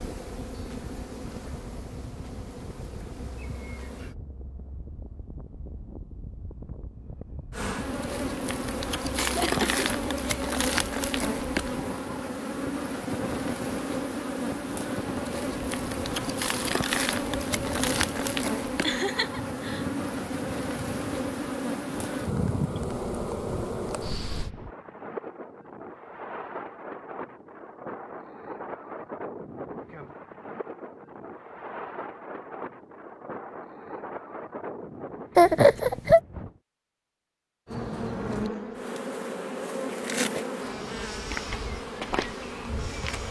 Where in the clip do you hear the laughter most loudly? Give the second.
36 s.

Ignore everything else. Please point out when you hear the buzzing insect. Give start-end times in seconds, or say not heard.
0.0-4.2, 7.5-24.5, 37.6-43.2.